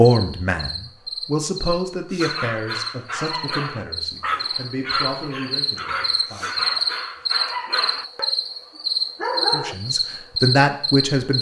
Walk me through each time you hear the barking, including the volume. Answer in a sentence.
You can hear the barking from 2.1 to 8.3 s, at a steady volume; and briefly from 9.2 to 9.8 s.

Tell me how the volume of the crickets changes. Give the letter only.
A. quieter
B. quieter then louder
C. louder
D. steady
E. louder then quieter
C.